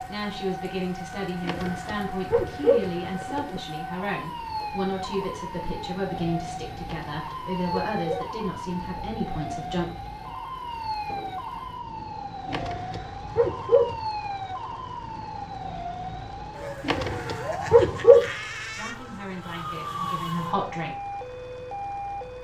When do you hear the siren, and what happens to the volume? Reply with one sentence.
The siren can be heard from 0.0 to 22.3 s, at a steady volume.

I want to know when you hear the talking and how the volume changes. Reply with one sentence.
The talking can be heard from 0.0 to 9.9 s, at a steady volume; and briefly from 18.8 to 20.9 s.